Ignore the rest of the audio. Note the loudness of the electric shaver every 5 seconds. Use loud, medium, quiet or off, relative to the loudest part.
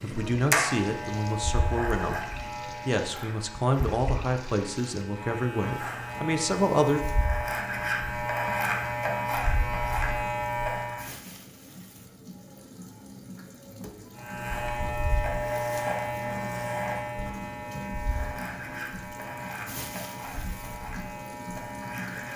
loud, loud, loud, loud, medium.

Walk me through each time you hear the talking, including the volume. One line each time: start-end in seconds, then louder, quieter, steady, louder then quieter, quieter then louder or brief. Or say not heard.
0.0-7.0 steady.